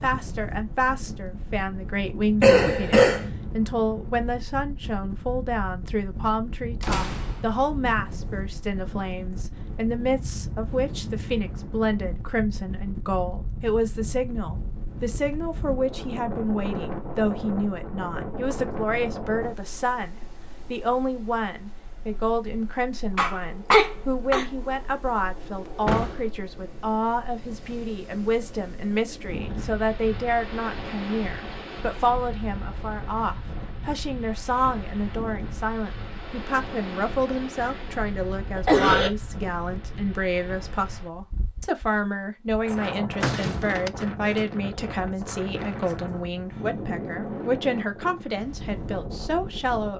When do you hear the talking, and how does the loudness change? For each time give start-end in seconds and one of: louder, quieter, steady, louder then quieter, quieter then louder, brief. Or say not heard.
0.0-49.9 steady.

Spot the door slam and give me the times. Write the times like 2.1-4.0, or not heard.
6.8-7.7, 25.9-26.3, 43.2-43.9.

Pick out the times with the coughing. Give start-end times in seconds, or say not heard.
2.4-3.2, 23.1-24.4, 37.6-39.1.